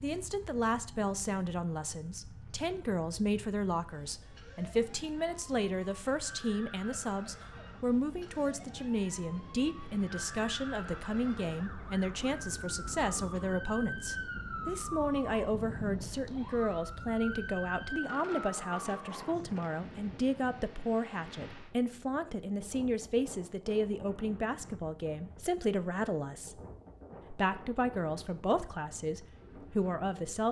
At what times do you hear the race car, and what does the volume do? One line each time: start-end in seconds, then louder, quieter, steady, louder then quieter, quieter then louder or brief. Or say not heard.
not heard.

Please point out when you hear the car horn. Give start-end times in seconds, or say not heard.
not heard.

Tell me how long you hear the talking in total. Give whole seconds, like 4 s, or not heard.
30 s.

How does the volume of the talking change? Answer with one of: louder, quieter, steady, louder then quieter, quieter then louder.
steady.